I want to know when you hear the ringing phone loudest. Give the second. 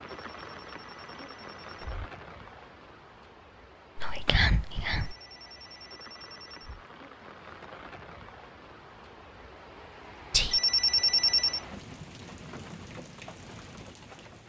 11 s.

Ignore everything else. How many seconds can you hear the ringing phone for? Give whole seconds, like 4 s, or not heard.
5 s.